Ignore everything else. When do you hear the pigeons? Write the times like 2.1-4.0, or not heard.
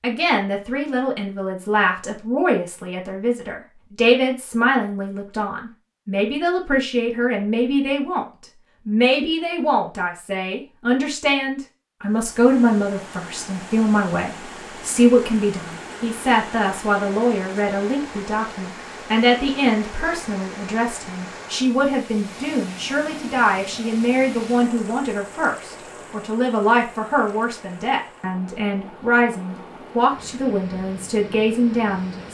not heard.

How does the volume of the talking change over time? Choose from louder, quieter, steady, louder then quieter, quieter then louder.
steady.